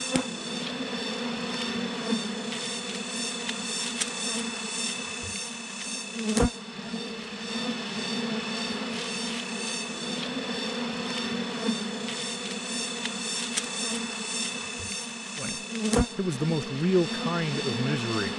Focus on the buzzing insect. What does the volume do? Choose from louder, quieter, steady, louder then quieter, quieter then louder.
steady.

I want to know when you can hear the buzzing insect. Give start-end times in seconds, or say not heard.
0.0-18.3.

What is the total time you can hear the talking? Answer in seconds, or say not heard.
3 s.